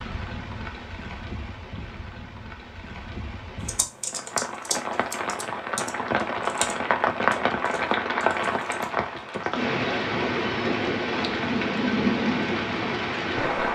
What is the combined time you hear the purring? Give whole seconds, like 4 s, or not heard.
not heard.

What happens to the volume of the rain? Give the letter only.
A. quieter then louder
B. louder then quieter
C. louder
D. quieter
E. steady
C.